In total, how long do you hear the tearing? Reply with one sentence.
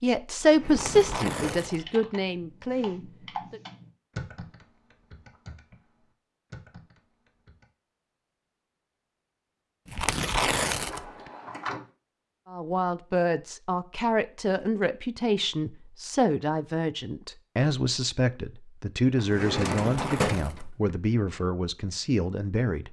You can hear the tearing for 4 seconds altogether.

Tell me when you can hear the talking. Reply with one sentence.
You can hear the talking from 0.0 to 3.6 s and from 12.4 to 22.8 s.